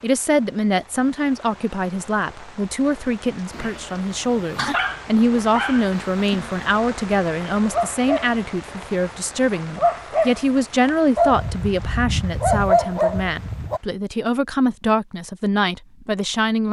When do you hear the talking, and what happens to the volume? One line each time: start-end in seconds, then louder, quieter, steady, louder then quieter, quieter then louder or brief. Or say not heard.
0.0-16.6 steady.